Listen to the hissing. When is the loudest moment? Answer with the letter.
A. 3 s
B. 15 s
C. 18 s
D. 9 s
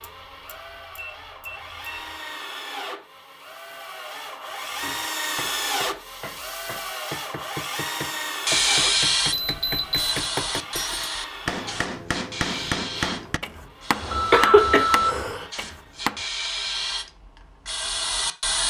D.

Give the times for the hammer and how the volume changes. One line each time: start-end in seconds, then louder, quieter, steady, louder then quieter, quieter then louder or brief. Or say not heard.
4.8-16.2 louder.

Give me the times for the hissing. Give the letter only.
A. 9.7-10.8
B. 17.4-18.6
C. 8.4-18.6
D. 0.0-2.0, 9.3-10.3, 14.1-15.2
C.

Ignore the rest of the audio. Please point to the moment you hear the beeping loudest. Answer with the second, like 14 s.
15 s.